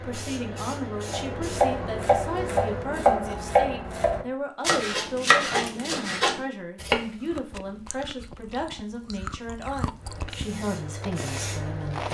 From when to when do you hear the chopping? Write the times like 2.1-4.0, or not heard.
1.0-7.0.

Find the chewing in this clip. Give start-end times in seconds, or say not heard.
7.2-12.0.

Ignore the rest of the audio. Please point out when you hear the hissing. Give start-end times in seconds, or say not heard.
0.0-2.9, 9.9-12.0.